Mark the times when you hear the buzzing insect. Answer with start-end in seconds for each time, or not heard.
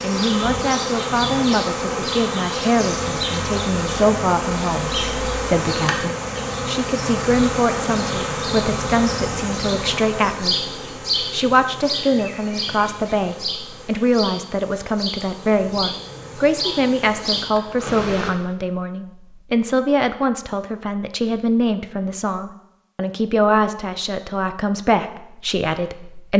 0.0-18.3.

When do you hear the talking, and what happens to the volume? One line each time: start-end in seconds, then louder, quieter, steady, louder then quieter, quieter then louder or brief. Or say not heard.
0.0-26.3 steady.